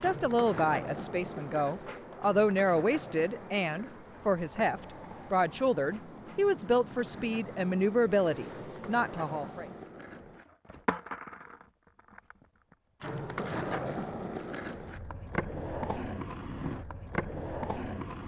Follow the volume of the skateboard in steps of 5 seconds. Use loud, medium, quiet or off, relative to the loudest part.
medium, medium, loud, loud.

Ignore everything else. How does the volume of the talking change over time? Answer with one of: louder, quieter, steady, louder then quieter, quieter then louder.
steady.